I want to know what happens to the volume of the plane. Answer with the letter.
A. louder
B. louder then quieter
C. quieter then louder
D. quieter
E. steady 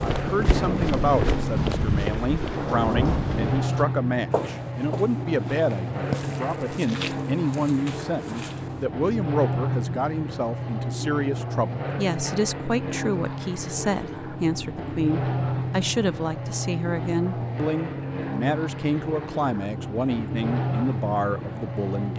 E.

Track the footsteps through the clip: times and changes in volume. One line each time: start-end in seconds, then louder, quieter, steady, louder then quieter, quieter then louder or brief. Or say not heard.
0.0-8.8 quieter.